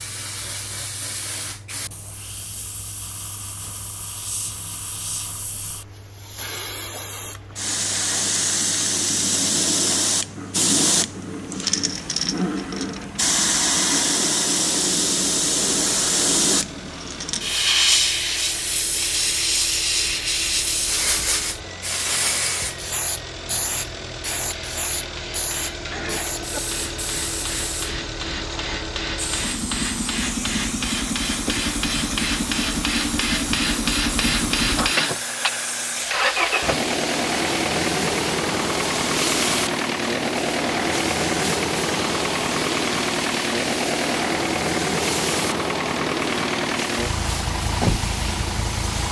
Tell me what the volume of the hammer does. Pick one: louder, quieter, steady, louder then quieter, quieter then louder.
louder.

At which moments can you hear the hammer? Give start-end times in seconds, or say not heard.
24.4-35.2.